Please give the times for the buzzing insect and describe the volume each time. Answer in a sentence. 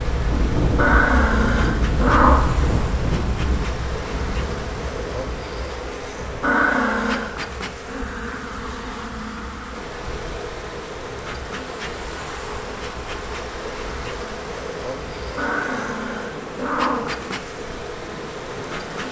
The buzzing insect can be heard from 0.0 to 19.0 s, at a steady volume.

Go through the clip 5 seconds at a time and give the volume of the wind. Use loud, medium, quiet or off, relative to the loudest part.
loud, quiet, quiet, quiet.